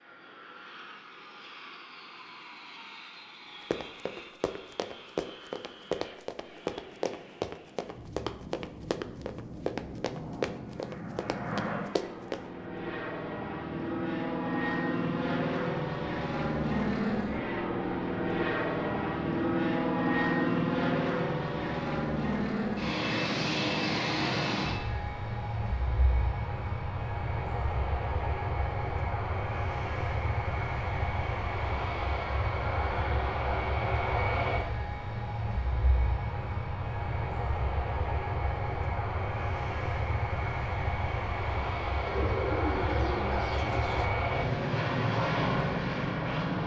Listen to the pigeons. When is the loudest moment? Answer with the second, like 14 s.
43 s.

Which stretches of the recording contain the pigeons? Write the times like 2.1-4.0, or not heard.
42.0-44.1.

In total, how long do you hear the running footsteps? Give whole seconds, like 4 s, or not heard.
9 s.